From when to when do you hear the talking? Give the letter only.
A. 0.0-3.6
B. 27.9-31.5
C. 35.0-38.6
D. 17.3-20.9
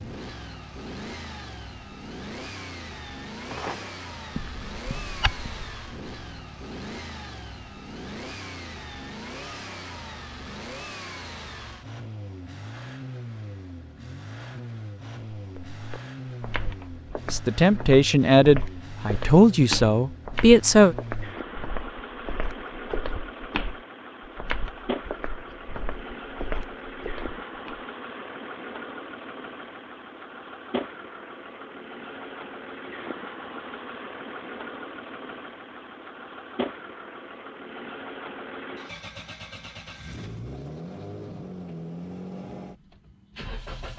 D.